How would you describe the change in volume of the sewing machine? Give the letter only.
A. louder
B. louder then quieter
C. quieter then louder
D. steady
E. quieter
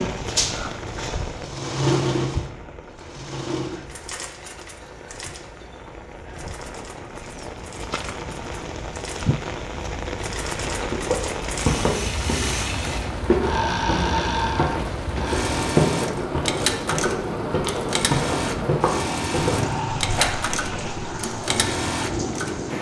C.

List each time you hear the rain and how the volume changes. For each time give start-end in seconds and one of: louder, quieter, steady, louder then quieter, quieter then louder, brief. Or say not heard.
0.0-22.7 louder.